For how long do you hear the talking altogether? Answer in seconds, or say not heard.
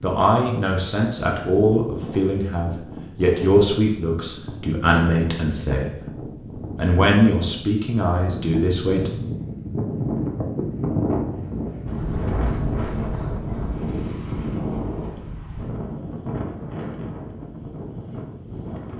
8 s.